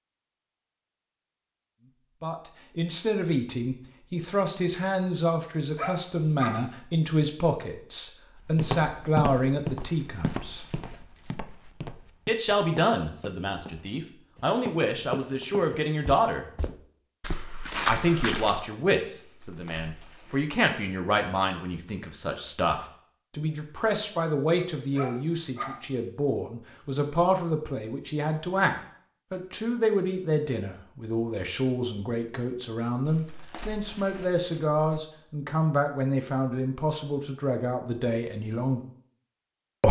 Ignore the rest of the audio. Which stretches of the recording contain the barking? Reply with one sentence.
You can hear the barking from 5.8 to 6.6 s and from 24.9 to 25.8 s.